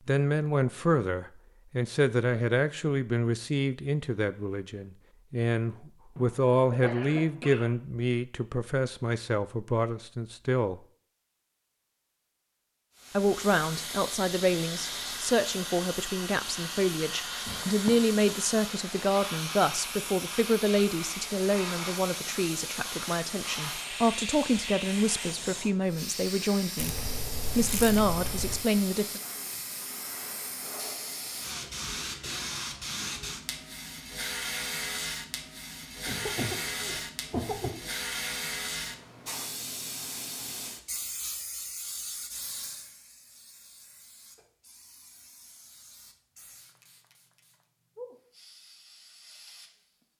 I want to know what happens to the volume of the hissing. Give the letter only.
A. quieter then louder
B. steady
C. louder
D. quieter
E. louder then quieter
D.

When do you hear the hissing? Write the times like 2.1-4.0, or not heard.
12.9-50.0.